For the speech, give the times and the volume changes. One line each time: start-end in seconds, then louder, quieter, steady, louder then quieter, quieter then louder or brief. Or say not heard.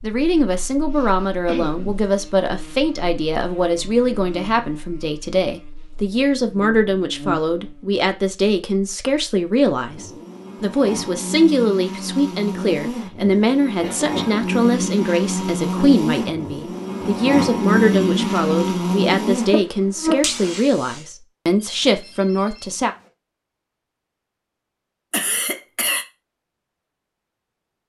0.0-22.9 steady.